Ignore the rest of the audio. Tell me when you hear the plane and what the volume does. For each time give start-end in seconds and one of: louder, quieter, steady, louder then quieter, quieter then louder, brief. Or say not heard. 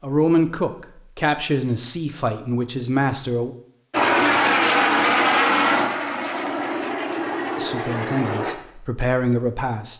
3.9-8.6 quieter.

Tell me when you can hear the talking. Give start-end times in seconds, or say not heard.
0.0-3.5, 7.5-9.9.